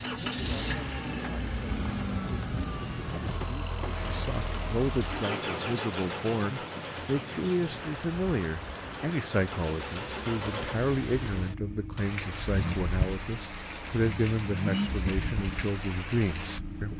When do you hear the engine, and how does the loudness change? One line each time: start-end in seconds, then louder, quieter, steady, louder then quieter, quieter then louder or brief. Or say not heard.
0.0-16.9 quieter then louder.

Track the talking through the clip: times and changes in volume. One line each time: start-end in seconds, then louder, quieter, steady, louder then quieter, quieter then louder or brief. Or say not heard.
0.2-16.9 louder.